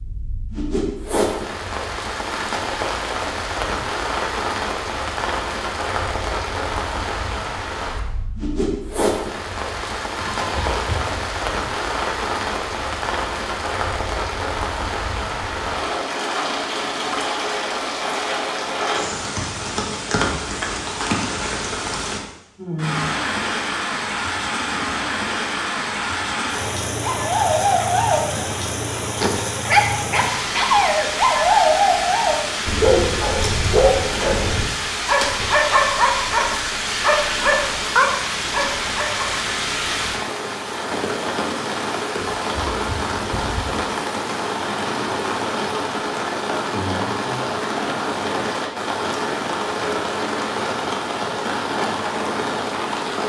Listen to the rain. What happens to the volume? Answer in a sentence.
The volume of the rain stays about the same.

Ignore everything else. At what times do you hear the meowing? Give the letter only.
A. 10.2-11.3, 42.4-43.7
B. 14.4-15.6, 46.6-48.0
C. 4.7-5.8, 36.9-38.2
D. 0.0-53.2
A.